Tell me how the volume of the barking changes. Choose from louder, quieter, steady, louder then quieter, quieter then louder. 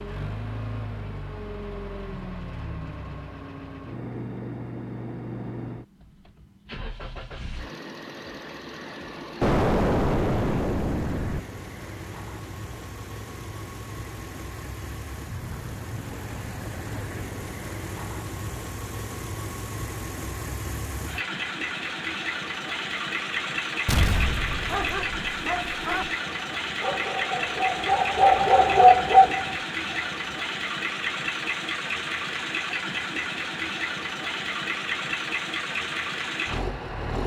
louder.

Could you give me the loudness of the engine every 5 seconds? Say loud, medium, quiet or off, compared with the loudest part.
medium, medium, medium, medium, loud, loud, loud, loud.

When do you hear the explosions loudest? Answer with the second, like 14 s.
10 s.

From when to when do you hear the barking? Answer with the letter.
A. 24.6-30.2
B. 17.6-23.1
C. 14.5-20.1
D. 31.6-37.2
A.